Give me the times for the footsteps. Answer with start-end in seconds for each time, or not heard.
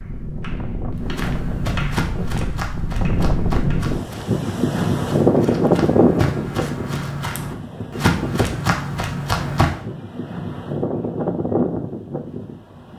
1.0-9.8.